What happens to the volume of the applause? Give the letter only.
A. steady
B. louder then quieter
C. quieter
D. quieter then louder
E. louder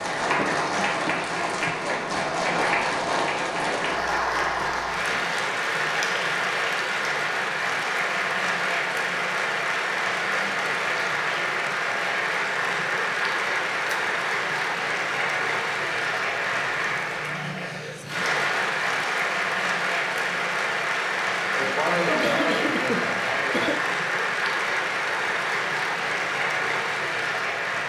A.